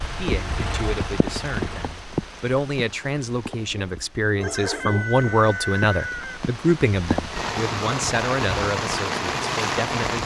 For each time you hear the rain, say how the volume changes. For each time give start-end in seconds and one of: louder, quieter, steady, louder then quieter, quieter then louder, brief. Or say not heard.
0.0-10.2 quieter then louder.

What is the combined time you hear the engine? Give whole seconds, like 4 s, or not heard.
2 s.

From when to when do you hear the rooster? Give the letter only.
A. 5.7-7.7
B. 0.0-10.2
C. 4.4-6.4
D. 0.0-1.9
C.